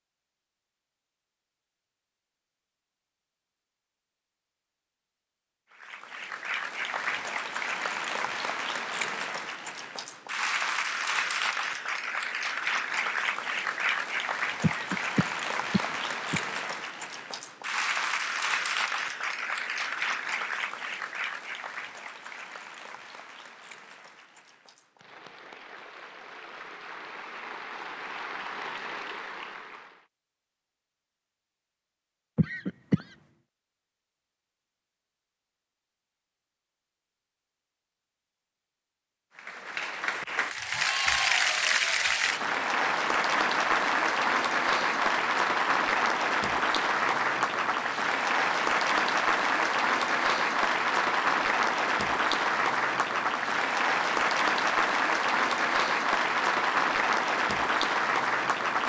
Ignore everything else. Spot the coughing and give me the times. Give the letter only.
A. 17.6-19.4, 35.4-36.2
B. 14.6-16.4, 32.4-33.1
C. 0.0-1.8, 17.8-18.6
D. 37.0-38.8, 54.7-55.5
B.